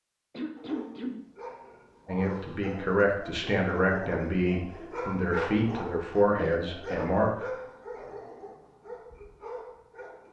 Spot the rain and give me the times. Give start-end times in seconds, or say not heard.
not heard.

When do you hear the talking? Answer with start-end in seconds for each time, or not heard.
2.0-7.5.